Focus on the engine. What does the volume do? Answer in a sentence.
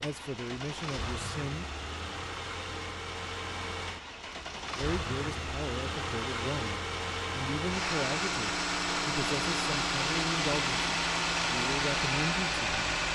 The loudness of the engine goes up.